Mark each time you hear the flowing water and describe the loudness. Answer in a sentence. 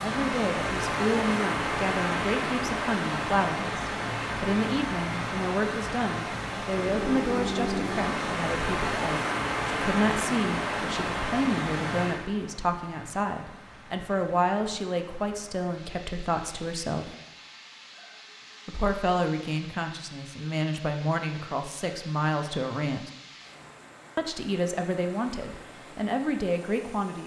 You can hear the flowing water from 0.0 to 27.2 s, getting quieter.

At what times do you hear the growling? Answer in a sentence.
The growling can be heard from 6.8 to 8.3 s.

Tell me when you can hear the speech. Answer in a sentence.
The speech can be heard from 0.0 to 17.1 s, from 18.6 to 23.1 s and from 24.1 to 27.2 s.